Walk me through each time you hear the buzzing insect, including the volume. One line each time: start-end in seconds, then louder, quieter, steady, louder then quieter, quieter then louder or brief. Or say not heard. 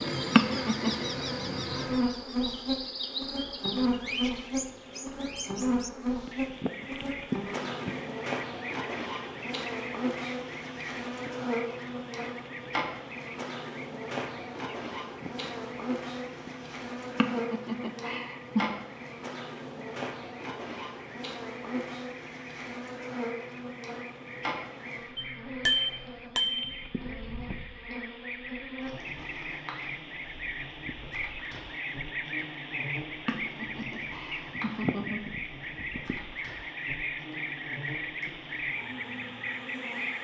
0.0-40.1 quieter.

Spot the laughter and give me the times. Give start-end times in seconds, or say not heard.
0.3-1.1, 17.1-18.8, 33.2-35.2.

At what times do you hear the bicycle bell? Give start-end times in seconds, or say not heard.
25.1-26.8.